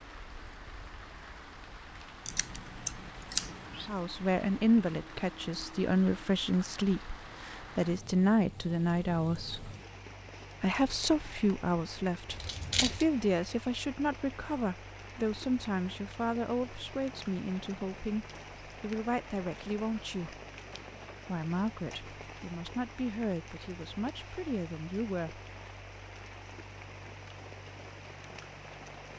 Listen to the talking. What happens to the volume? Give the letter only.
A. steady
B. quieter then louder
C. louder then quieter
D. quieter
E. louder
D.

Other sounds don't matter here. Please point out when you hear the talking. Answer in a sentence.
The talking can be heard from 3.9 to 9.7 s, from 10.6 to 20.4 s and from 21.2 to 25.4 s.